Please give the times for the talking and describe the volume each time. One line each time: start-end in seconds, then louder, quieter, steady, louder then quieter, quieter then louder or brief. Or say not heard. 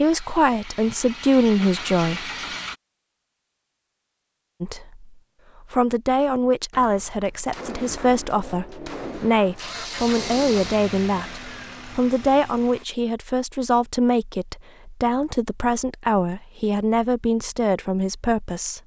0.0-2.3 brief
4.6-18.8 steady.